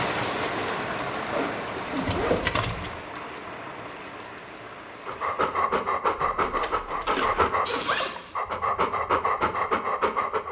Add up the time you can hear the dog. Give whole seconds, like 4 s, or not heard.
5 s.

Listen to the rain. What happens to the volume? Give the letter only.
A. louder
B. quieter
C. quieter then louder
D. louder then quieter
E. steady
B.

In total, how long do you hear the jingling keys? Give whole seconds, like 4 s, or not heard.
2 s.